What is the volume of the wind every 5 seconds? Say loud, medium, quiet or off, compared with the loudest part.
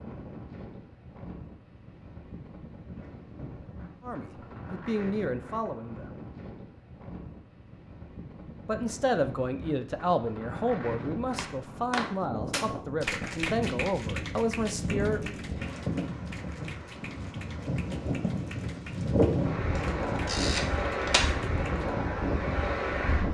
quiet, quiet, medium, loud, loud.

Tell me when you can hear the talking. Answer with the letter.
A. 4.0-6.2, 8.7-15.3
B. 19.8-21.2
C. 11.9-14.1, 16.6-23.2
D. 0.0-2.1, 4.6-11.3
A.